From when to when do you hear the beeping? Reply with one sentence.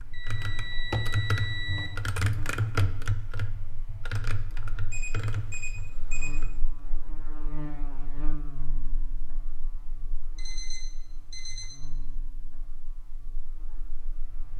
The beeping can be heard from 0.1 to 1.9 s, from 4.9 to 6.4 s and from 10.3 to 11.8 s.